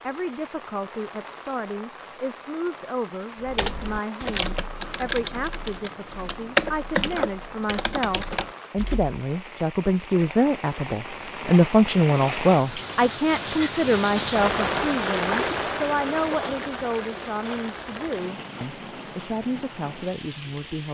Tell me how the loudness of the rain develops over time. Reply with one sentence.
The volume of the rain goes up, then down.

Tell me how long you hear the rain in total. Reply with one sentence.
The rain can be heard for 21 seconds in total.